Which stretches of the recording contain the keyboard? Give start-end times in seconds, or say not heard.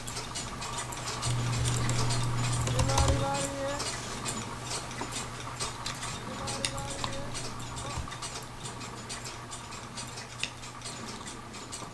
1.2-3.2, 6.4-8.1.